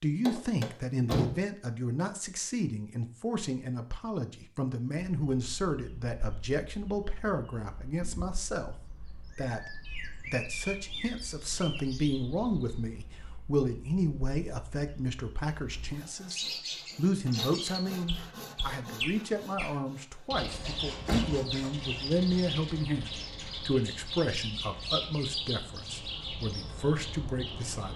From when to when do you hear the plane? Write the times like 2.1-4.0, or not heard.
not heard.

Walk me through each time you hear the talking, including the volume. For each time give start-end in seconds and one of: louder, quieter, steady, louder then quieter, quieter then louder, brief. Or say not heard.
0.0-27.9 steady.